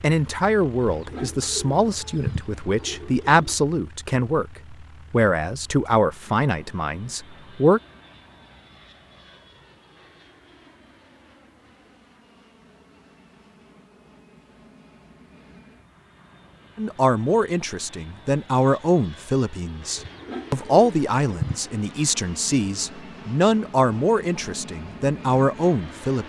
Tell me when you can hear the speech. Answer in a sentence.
The speech can be heard from 0.0 to 7.8 s and from 16.8 to 26.2 s.